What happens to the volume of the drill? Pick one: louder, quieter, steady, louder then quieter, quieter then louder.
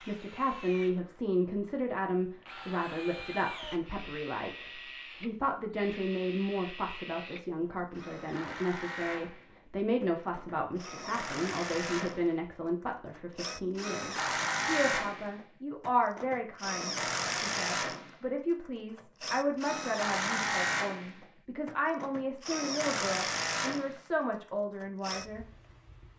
louder.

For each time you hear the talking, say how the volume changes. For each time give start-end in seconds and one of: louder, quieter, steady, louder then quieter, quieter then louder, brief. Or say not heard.
0.1-25.4 steady.